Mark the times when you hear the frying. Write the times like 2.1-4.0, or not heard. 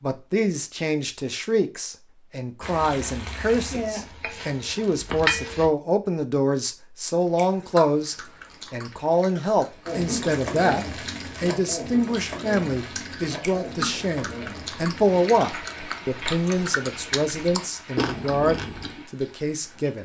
2.6-5.7, 9.8-20.0.